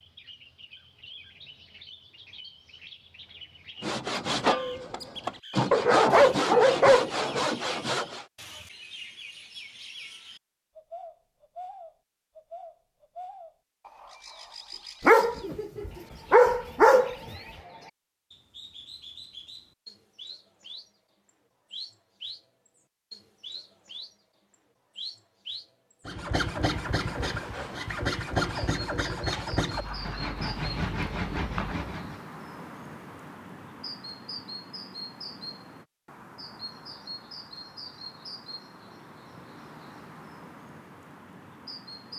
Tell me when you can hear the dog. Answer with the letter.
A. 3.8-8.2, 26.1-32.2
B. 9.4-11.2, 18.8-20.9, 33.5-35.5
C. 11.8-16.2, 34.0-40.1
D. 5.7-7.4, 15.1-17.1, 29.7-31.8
D.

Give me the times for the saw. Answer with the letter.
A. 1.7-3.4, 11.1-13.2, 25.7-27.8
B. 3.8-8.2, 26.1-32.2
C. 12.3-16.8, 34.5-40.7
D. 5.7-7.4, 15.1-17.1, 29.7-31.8
B.